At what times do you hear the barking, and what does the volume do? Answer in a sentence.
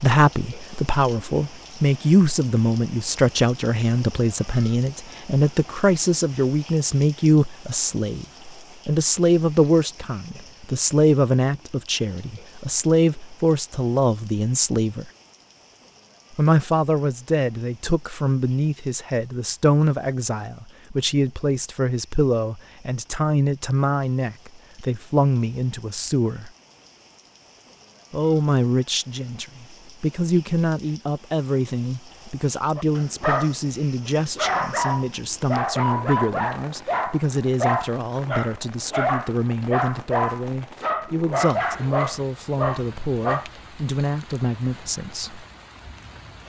The barking can be heard from 32.8 to 43.5 s, at a steady volume.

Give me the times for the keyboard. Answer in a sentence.
You can't hear the keyboard here.